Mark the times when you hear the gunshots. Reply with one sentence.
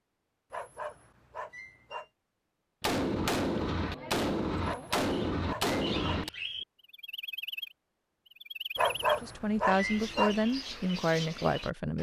The gunshots can be heard from 2.8 to 6.3 s.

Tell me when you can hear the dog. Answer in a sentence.
The dog can be heard from 0.5 to 2.0 s, from 4.6 to 6.2 s and from 8.8 to 10.4 s.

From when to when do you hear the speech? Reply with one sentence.
The speech can be heard from 9.2 to 11.9 s.